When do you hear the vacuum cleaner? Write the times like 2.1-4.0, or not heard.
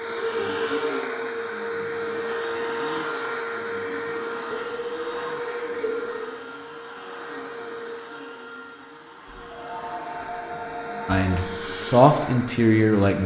0.0-13.2.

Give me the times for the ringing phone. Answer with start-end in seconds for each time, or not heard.
0.3-1.0, 4.5-6.1, 9.2-11.6.